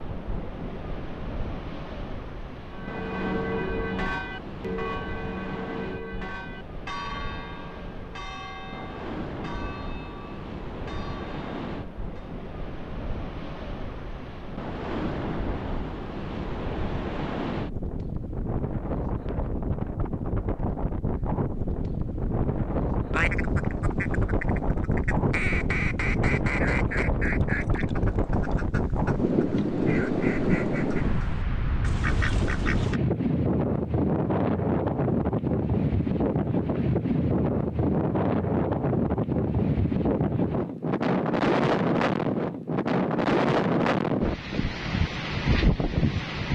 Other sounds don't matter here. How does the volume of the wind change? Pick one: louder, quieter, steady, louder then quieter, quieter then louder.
louder.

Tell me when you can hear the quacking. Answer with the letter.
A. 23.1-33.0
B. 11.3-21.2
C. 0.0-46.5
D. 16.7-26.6
A.